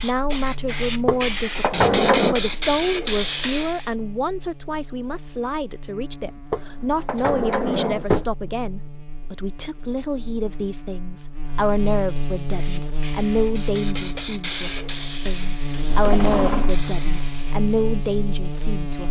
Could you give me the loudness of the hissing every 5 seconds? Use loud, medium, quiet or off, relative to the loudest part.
loud, off, medium, medium.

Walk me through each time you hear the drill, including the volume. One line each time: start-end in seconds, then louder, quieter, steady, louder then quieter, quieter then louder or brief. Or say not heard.
not heard.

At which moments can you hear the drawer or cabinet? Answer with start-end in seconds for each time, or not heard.
1.1-2.4, 6.5-8.2, 15.9-16.8.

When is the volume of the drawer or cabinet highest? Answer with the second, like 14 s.
2 s.